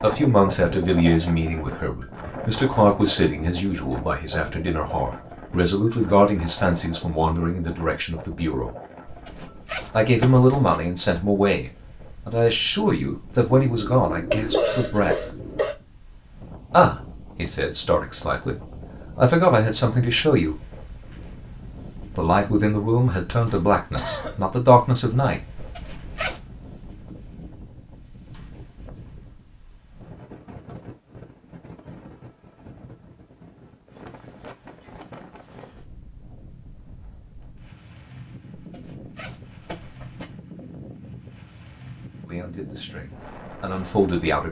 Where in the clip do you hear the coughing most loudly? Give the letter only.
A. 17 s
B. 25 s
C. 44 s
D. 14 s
D.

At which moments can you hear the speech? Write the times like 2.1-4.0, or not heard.
0.0-8.7, 9.9-15.2, 16.7-20.6, 22.1-25.4, 42.2-44.4.